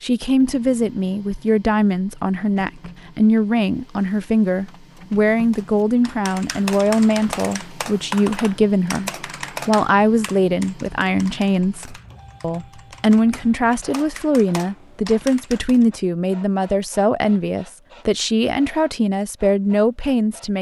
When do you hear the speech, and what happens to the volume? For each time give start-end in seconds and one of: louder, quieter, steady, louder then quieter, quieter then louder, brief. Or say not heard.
0.0-20.5 steady.